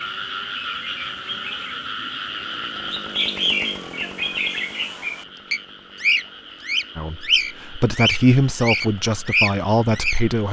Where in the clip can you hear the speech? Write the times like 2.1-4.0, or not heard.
7.0-10.4.